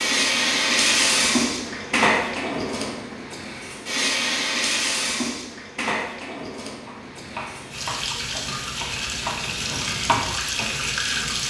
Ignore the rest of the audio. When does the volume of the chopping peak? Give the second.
10 s.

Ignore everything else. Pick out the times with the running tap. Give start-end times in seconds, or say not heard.
0.0-11.4.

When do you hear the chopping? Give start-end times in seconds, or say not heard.
6.8-11.3.